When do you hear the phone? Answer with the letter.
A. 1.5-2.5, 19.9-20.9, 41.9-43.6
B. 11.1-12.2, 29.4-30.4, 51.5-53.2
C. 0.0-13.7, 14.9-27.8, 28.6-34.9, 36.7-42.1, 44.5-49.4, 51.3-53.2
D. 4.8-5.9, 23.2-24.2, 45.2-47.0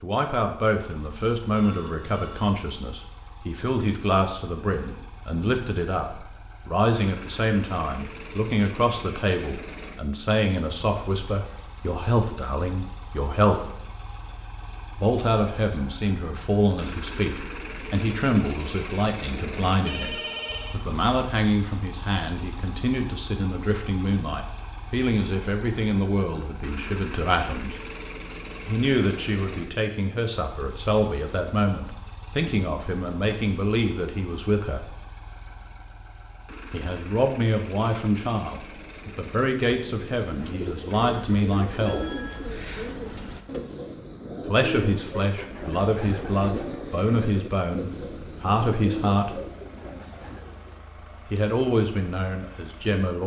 A.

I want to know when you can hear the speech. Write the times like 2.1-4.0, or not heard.
0.0-13.7, 14.9-27.8, 28.6-34.9, 36.7-42.1, 44.5-49.4, 51.3-53.2.